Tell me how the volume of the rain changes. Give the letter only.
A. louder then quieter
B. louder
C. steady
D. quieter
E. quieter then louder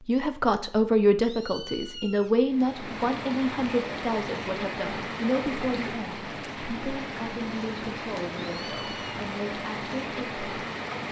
C.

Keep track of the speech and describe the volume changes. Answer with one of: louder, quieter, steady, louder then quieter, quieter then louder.
quieter.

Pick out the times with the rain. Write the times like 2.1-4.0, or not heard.
2.5-11.0.